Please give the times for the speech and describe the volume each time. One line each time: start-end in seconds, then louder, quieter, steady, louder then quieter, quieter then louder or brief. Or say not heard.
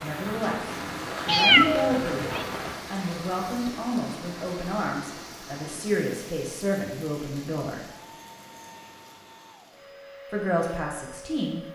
0.0-7.8 steady
10.3-11.7 brief.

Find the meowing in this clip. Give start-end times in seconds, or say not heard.
1.2-2.5.